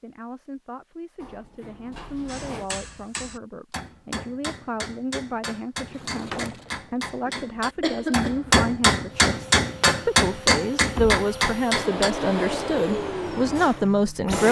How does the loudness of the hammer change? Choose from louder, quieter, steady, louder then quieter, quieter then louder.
louder.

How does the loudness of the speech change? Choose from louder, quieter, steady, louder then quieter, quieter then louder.
louder.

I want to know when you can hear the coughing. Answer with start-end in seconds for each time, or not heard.
7.2-8.6.